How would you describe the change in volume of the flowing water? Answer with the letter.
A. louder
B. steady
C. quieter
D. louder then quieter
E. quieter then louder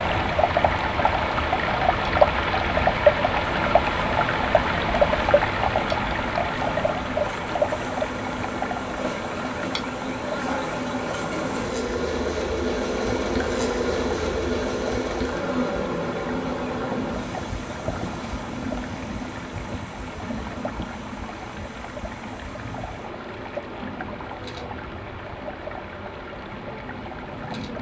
C.